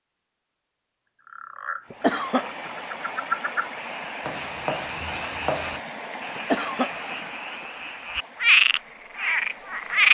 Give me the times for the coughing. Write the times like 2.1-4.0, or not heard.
1.9-2.7, 6.3-7.2.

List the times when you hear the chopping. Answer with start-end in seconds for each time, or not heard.
4.2-5.8.